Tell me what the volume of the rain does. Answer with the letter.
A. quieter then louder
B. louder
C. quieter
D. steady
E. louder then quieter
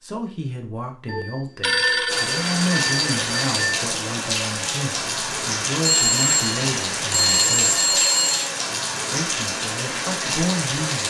D.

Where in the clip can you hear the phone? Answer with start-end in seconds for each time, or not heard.
1.1-3.8, 5.8-8.5.